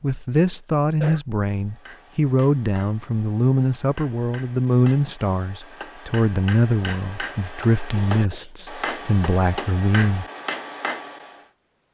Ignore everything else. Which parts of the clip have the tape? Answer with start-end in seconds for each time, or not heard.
not heard.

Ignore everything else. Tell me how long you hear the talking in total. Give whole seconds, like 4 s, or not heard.
10 s.